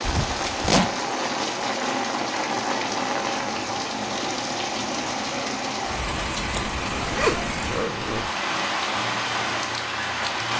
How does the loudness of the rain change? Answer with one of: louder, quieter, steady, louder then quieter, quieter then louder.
steady.